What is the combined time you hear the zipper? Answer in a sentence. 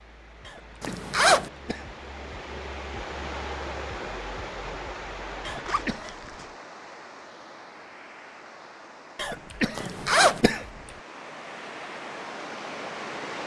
You can hear the zipper for 2 seconds altogether.